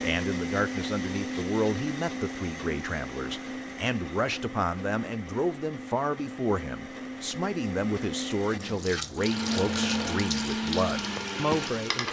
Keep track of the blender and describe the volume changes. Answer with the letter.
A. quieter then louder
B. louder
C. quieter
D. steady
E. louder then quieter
A.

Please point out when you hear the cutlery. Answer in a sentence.
You can't hear the cutlery here.